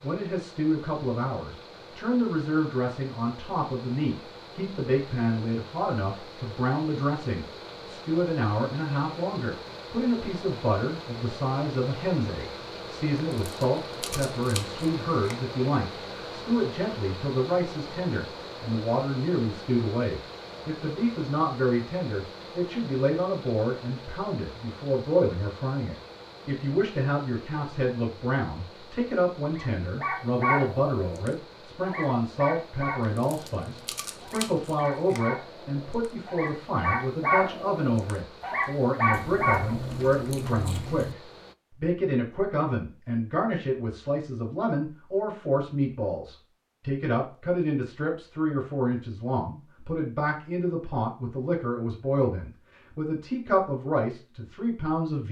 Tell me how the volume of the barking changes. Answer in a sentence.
The volume of the barking goes down, then up.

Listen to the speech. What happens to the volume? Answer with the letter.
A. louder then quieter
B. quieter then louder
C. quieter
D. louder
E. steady
E.